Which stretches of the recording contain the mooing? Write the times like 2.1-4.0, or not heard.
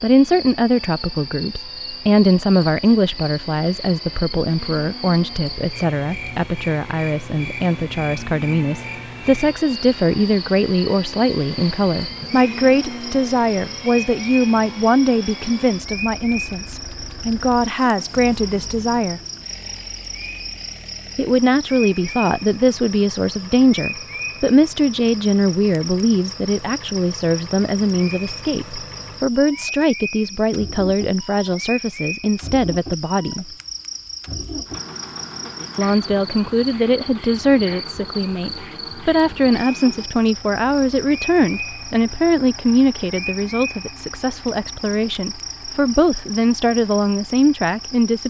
not heard.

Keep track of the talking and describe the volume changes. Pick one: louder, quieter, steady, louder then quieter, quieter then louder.
steady.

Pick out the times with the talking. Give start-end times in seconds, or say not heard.
0.0-19.2, 21.1-33.5, 35.8-48.2.